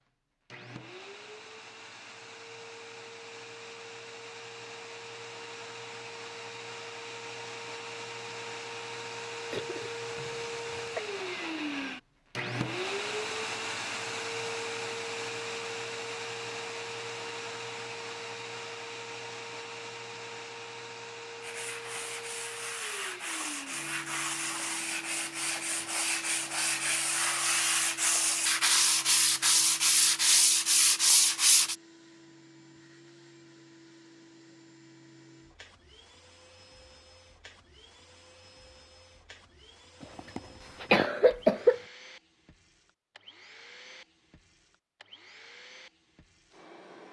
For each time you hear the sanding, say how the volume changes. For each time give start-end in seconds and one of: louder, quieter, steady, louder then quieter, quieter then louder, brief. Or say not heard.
21.4-31.8 louder.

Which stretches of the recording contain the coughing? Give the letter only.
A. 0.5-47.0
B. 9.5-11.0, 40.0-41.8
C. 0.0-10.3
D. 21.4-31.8
B.